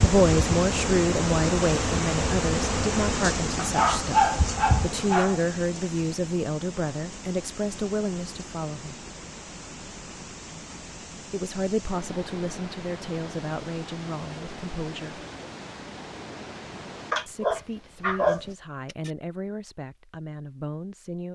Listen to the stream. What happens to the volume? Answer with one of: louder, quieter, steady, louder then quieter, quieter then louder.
quieter.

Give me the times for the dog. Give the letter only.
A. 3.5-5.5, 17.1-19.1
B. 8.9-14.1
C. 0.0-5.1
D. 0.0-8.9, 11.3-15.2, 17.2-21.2
A.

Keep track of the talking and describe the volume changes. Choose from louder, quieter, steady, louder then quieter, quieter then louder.
quieter.